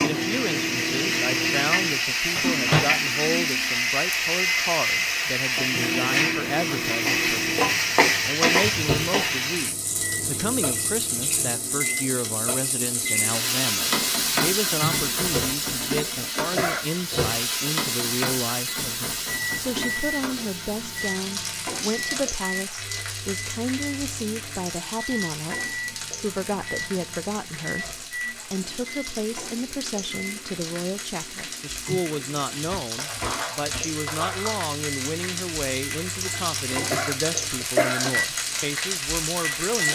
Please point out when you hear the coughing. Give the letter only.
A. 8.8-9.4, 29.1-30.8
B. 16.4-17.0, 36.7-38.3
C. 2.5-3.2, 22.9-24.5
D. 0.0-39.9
B.